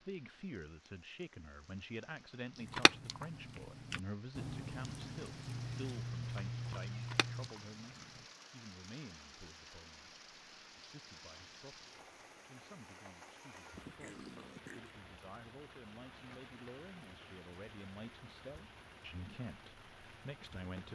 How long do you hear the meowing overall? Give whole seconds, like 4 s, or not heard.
3 s.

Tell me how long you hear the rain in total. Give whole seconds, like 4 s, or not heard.
21 s.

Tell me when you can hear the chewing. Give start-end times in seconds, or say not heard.
2.6-8.2.